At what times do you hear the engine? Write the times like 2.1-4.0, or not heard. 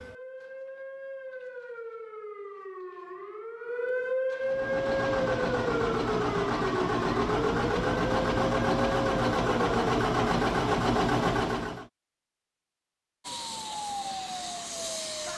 4.4-11.8.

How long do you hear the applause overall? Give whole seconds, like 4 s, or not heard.
not heard.